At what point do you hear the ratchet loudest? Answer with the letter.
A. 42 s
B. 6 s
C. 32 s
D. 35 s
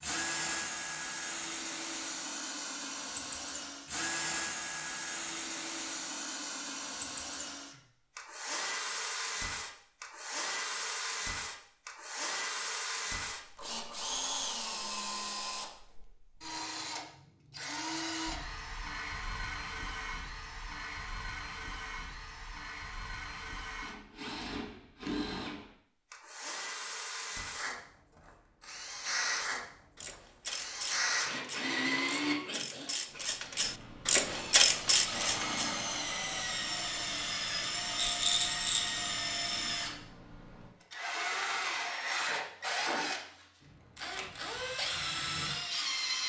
D.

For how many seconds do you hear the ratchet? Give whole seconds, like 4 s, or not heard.
6 s.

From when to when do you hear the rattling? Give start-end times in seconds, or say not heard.
38.0-39.0.